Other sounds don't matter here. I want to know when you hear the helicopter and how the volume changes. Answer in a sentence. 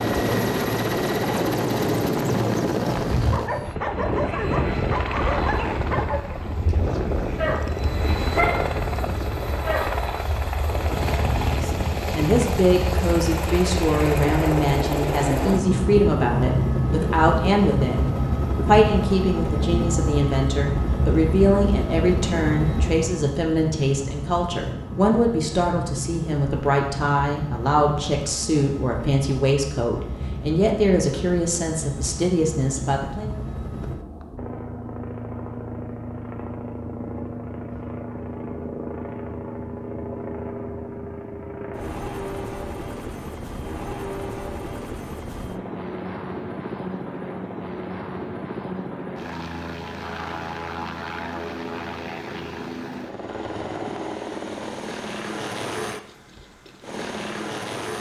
You can hear the helicopter from 0.0 to 57.9 s, getting quieter.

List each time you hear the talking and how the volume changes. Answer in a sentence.
You can hear the talking from 11.6 to 33.4 s, at a steady volume.